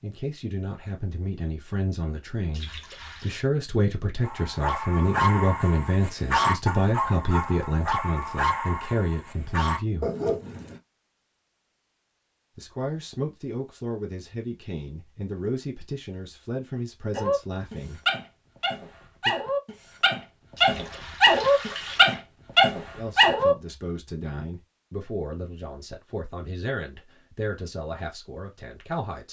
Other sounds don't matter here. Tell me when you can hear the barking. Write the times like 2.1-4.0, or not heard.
4.2-10.8, 17.1-23.6.